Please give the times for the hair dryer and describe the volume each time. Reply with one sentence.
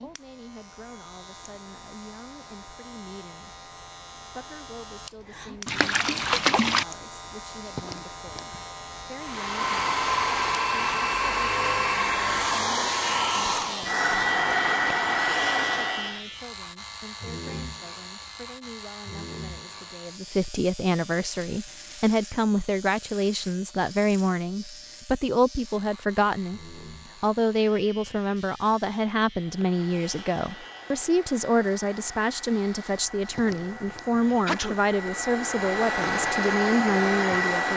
You can hear the hair dryer from 9.2 to 16.2 s, at a steady volume; and from 29.3 to 37.7 s, getting louder.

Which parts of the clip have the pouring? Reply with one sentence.
The pouring can be heard from 5.7 to 6.8 s.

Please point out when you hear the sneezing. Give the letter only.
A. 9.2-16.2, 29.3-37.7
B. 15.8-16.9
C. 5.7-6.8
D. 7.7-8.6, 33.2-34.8
D.